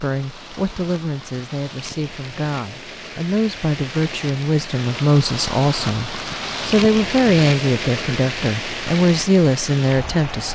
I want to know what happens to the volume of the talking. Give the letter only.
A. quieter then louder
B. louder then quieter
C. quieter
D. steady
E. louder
E.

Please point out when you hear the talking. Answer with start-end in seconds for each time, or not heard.
0.0-10.5.